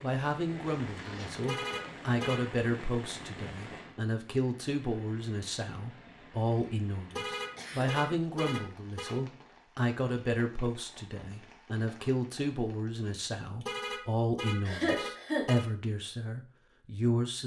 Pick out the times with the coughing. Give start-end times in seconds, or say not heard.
0.7-1.3, 7.5-8.1, 14.7-15.4.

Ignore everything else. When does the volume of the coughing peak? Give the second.
15 s.